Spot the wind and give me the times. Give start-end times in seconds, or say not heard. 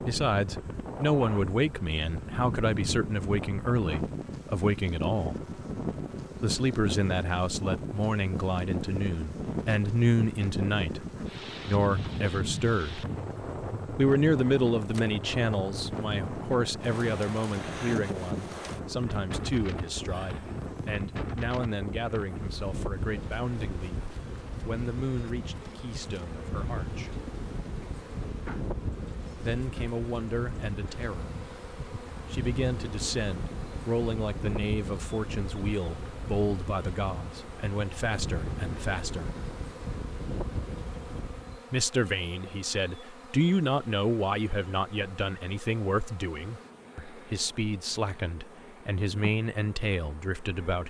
0.0-41.6.